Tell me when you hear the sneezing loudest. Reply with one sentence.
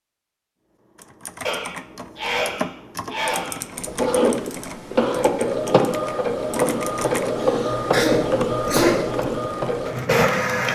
The loudest moment of the sneezing is at 9 seconds.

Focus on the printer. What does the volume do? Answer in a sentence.
The volume of the printer stays about the same.